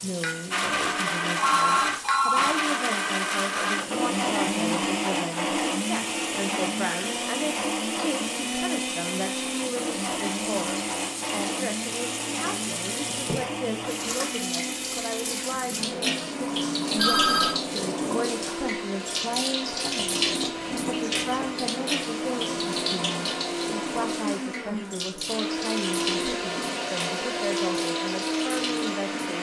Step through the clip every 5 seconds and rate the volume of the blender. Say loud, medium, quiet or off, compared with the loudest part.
loud, loud, medium, medium, medium, loud.